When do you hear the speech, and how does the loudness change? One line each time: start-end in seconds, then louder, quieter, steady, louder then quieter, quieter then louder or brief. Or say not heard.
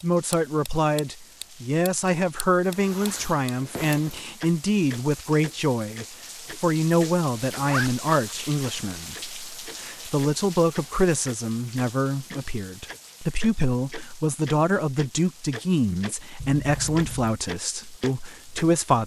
0.0-19.0 steady.